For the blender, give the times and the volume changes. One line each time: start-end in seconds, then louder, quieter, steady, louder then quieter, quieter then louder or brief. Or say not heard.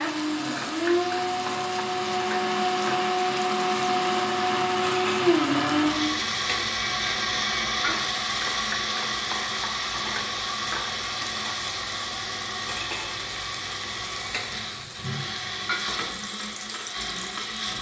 0.0-17.7 quieter.